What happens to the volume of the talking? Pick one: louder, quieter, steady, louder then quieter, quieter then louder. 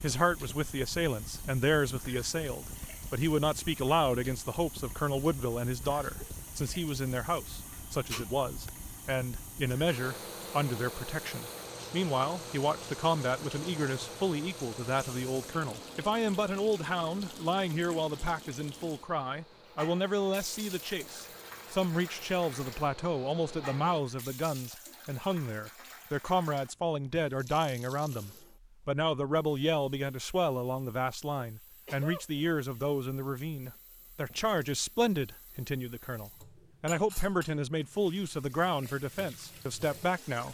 steady.